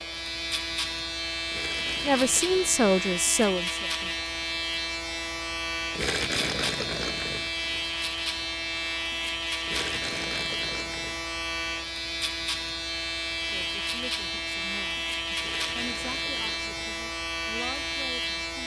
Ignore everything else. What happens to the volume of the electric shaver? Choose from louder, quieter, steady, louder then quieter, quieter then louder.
steady.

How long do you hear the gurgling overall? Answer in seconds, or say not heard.
6 s.